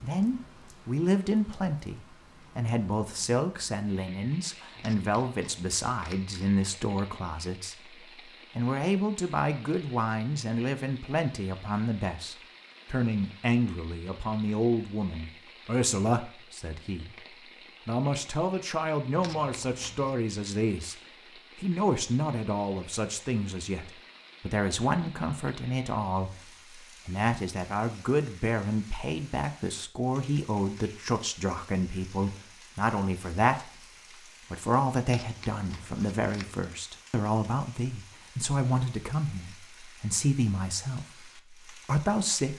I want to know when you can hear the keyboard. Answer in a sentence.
You can't hear the keyboard here.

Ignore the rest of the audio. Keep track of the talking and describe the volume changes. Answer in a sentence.
The volume of the talking stays about the same.